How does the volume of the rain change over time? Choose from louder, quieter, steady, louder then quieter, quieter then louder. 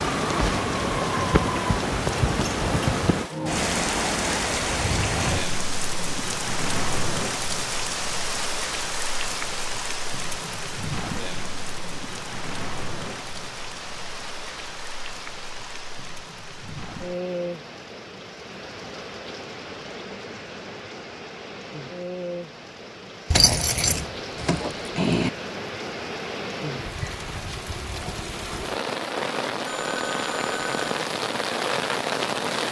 quieter then louder.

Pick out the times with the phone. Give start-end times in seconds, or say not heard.
29.6-30.9.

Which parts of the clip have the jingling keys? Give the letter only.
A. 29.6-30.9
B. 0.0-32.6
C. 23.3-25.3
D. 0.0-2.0
C.